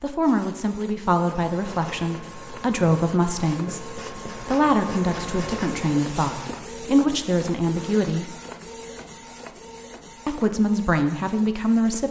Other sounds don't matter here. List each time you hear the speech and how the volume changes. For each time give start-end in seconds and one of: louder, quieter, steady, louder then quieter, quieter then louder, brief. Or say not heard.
0.0-8.3 steady
10.2-12.0 brief.